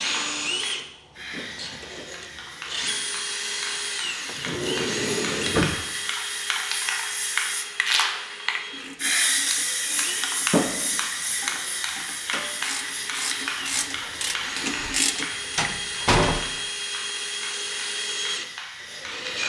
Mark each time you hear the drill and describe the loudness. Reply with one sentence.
You can hear the drill from 0.0 to 19.4 s, getting quieter then louder.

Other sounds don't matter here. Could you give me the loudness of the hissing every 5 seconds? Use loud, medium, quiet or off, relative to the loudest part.
medium, loud, loud, medium.